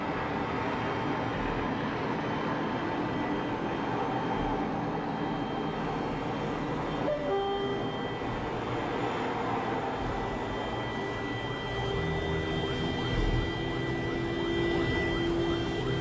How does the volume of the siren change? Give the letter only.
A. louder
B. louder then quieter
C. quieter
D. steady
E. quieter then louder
A.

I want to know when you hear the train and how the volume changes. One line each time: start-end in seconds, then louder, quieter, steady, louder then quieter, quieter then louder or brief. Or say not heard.
0.0-15.8 quieter.